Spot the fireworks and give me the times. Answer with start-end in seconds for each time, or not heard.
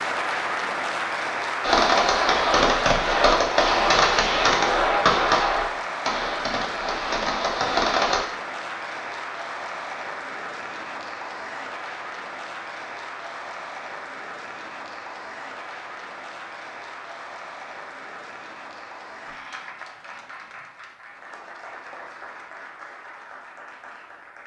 1.6-8.2.